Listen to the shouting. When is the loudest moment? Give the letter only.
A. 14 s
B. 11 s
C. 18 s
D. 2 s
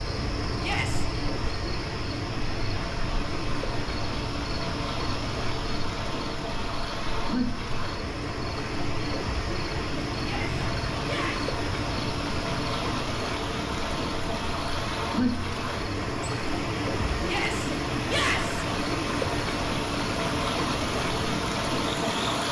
C.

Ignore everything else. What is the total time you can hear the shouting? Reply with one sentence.
You can hear the shouting for 4 seconds altogether.